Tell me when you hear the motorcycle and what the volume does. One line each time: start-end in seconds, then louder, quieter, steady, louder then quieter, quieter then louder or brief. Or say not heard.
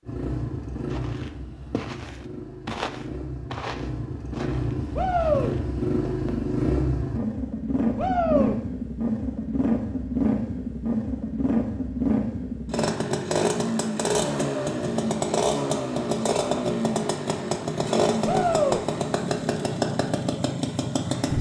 0.1-21.3 louder.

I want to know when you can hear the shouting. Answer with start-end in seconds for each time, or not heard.
5.0-5.5, 8.0-8.6, 18.2-18.9.